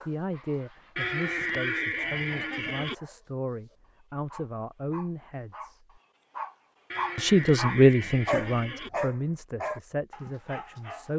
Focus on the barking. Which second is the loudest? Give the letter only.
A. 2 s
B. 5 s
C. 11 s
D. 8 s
D.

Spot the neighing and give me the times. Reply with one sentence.
The neighing can be heard from 0.9 to 3.0 s and from 6.9 to 8.9 s.